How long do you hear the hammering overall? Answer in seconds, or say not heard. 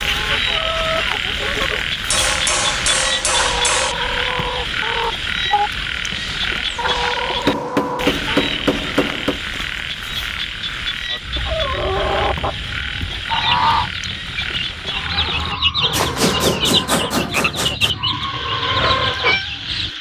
6 s.